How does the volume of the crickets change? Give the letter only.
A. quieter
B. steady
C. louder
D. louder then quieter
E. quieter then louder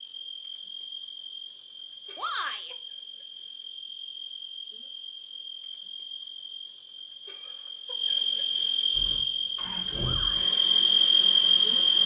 C.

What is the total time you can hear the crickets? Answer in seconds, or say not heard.
12 s.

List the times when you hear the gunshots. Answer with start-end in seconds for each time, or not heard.
not heard.